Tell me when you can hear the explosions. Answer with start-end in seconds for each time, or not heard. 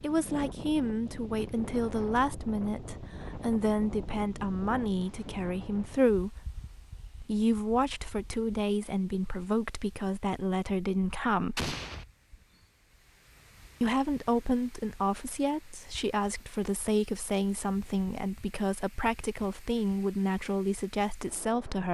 11.6-12.1.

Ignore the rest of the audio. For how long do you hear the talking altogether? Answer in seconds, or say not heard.
19 s.